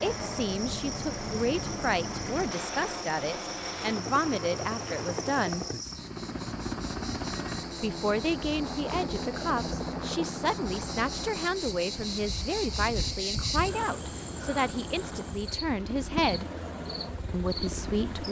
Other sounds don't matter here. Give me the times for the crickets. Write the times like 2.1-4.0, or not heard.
0.0-18.2.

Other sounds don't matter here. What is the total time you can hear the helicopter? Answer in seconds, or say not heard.
18 s.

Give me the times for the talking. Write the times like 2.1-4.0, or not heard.
0.0-5.7, 7.8-16.4, 17.3-18.2.